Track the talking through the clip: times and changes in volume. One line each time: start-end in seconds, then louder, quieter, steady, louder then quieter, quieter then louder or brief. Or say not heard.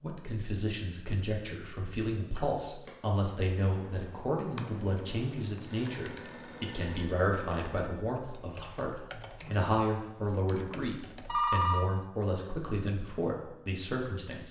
0.0-14.4 steady.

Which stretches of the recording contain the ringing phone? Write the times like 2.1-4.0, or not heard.
2.4-2.9, 5.7-8.0, 11.2-11.8.